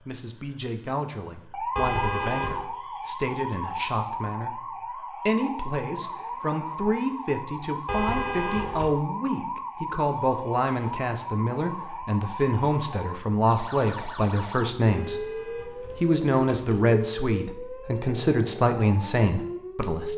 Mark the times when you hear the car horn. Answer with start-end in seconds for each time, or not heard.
1.8-2.6, 7.8-8.9, 14.9-16.9.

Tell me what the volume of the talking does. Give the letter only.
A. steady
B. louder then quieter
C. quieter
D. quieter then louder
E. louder
E.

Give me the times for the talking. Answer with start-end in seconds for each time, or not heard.
0.0-20.1.